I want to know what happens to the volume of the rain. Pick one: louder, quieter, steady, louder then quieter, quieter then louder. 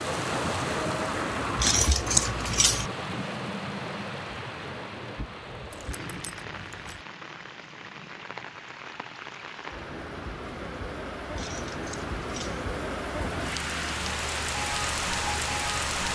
quieter then louder.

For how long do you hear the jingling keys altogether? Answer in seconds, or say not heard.
4 s.